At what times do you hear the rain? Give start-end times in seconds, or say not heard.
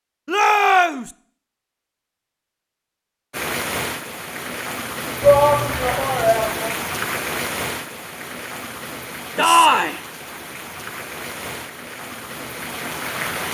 3.3-13.4.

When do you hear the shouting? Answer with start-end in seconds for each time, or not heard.
0.2-1.1, 5.2-6.8, 9.3-10.0.